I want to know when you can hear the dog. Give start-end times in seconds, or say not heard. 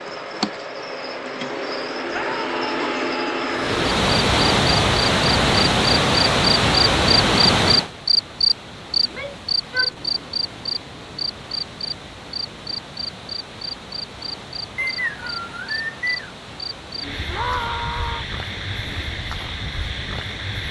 not heard.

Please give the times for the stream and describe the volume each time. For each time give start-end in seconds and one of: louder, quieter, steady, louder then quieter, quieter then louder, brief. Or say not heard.
3.5-20.6 quieter.